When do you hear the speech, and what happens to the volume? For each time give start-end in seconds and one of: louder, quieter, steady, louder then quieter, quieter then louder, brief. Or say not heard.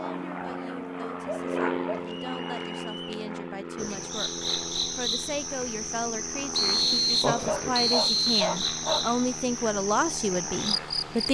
0.0-11.2 louder.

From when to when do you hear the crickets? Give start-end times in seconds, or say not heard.
3.8-11.2.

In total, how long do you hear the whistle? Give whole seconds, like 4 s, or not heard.
3 s.